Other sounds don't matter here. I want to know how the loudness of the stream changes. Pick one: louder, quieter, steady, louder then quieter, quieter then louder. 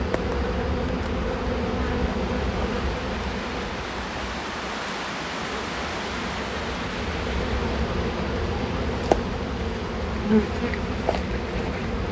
louder then quieter.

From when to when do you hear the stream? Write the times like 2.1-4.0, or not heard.
0.0-12.0.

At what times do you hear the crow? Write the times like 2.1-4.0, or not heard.
not heard.